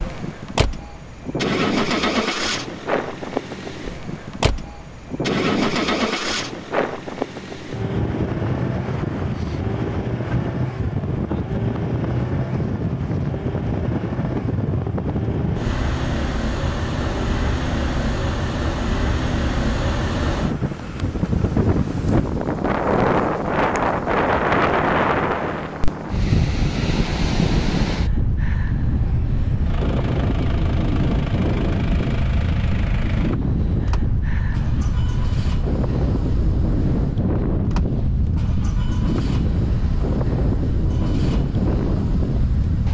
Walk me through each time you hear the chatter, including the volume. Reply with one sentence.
You can't hear the chatter here.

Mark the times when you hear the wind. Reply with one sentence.
You can hear the wind from 0.0 to 42.8 s.